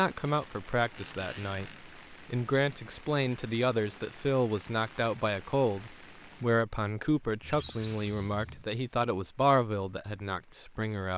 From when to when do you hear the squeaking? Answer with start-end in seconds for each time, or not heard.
0.9-1.8, 7.4-8.7.